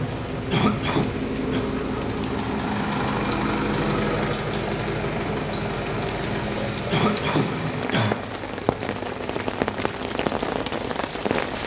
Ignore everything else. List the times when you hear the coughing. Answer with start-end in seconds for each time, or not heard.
0.5-1.6, 6.9-8.2.